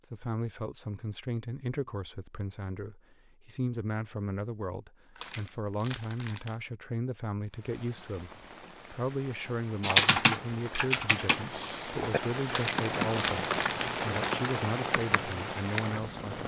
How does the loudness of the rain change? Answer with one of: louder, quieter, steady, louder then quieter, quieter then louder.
louder.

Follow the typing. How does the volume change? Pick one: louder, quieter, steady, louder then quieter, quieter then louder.
quieter.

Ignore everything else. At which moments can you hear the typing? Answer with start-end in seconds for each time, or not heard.
9.8-16.0.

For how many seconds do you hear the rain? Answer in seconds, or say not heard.
9 s.